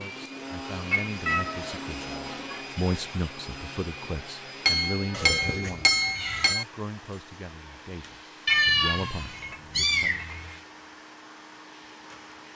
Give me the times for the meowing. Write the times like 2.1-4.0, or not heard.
1.2-2.6, 5.1-6.5, 8.4-10.6.